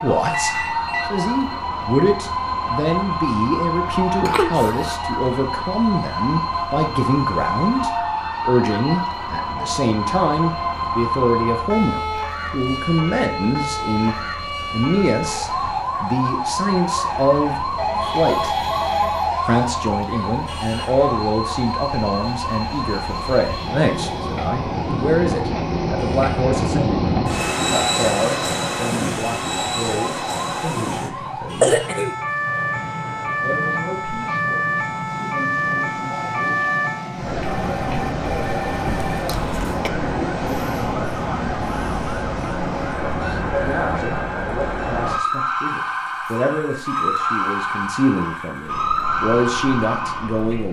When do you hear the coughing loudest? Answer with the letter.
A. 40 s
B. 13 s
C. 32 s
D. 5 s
C.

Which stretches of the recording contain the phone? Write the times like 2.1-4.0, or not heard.
0.2-1.1, 17.8-19.4, 37.4-39.4.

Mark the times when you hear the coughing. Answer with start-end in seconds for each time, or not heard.
4.2-4.9, 31.6-32.1, 38.9-39.9.